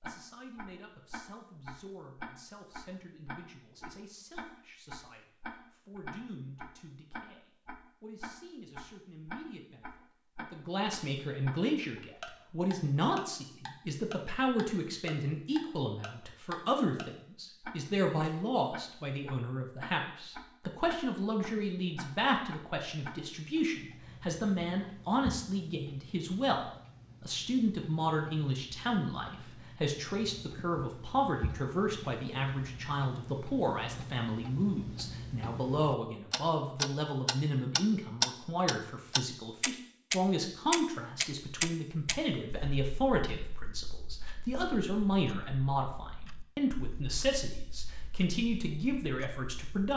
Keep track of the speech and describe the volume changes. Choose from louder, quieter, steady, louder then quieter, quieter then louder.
louder.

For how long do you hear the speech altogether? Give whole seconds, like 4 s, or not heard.
50 s.